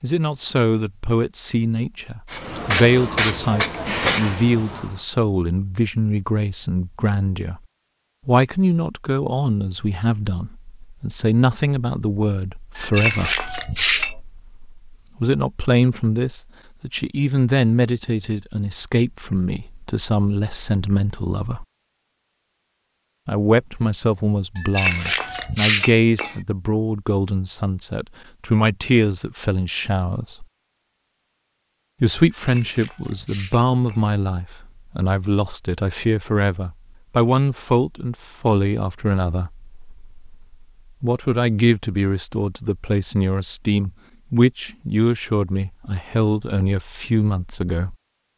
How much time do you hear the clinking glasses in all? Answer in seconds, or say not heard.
5 s.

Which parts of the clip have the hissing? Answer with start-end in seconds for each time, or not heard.
2.2-5.0.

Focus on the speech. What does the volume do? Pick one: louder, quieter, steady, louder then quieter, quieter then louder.
steady.